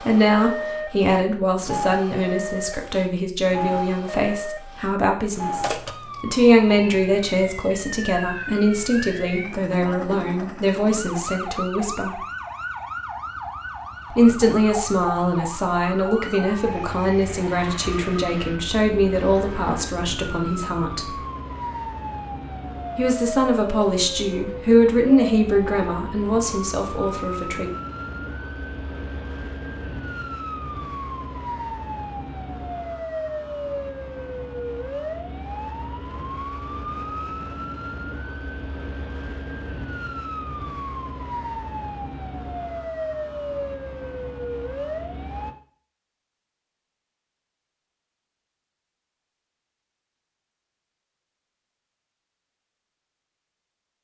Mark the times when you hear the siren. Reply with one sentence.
The siren can be heard from 0.0 to 45.5 s.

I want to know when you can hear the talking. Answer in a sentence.
The talking can be heard from 0.0 to 12.2 s, from 14.1 to 21.2 s and from 22.9 to 27.7 s.